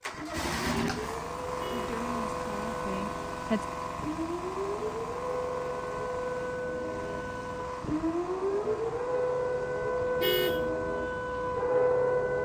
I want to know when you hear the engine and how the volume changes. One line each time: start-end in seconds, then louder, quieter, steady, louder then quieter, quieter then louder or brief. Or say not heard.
0.0-12.4 quieter.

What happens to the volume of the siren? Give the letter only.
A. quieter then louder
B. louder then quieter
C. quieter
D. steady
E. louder
E.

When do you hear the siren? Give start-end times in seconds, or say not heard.
0.0-12.4.